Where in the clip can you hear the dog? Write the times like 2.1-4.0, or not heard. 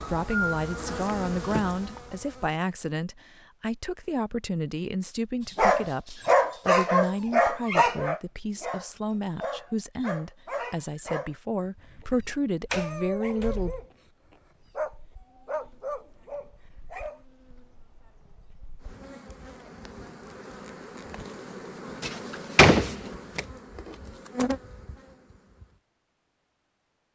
5.5-17.2.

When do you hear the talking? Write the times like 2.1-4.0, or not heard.
0.0-13.8.